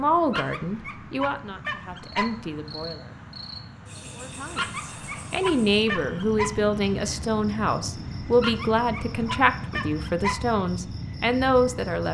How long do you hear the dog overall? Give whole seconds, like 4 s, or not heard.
6 s.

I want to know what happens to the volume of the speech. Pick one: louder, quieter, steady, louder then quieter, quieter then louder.
steady.